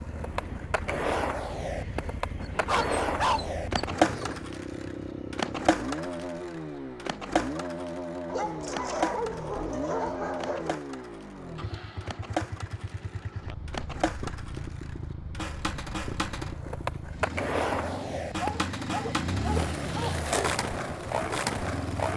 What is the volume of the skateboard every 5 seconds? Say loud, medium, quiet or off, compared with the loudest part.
loud, loud, medium, loud, loud.